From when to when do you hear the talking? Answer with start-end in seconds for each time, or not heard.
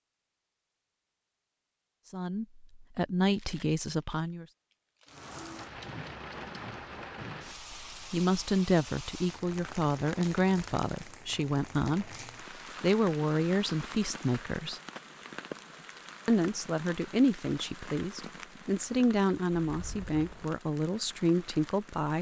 2.1-4.5, 8.1-12.1, 12.8-14.8, 16.2-22.1.